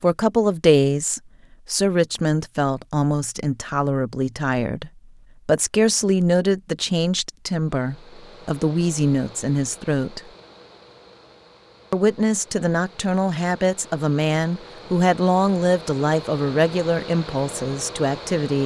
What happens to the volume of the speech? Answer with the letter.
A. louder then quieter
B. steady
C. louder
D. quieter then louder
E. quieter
B.